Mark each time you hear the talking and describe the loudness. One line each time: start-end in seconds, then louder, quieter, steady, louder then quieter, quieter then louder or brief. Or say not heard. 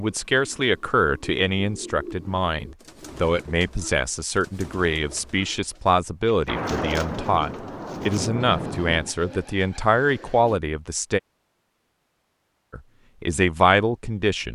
0.0-11.2 steady
12.7-14.5 brief.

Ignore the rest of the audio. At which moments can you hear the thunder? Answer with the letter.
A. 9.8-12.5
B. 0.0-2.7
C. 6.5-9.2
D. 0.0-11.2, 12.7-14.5
C.